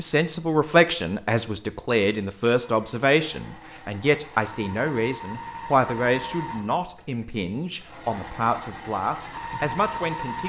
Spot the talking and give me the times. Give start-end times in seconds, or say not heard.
0.0-10.4.